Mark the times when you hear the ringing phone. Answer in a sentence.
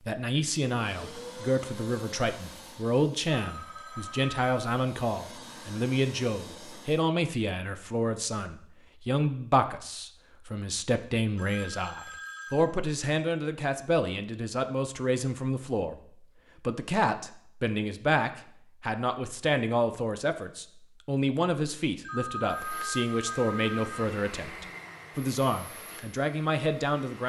You can hear the ringing phone from 3.3 to 4.5 s, from 11.3 to 12.8 s and from 22.0 to 24.1 s.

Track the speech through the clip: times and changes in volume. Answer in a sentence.
The speech can be heard from 0.0 to 27.2 s, at a steady volume.